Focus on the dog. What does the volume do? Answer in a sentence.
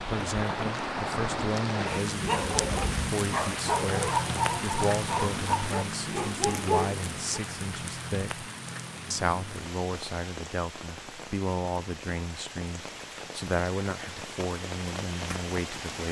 The loudness of the dog stays about the same.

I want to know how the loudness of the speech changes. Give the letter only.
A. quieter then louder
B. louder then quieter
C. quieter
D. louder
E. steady
E.